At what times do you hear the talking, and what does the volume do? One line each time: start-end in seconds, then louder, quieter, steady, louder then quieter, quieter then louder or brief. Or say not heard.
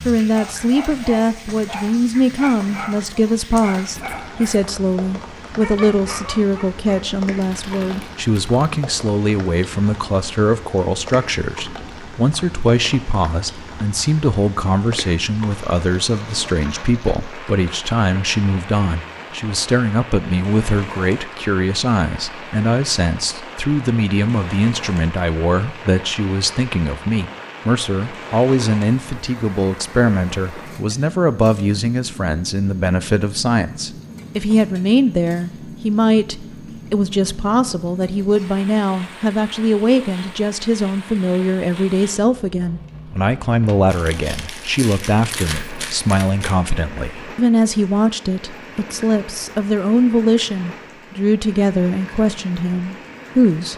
0.1-53.7 steady.